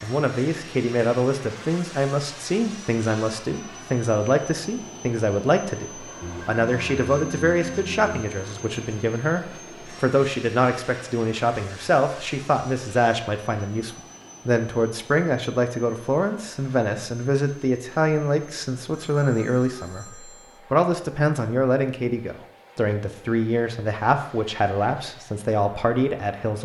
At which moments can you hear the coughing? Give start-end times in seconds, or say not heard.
not heard.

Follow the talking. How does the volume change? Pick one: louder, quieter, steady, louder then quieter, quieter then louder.
steady.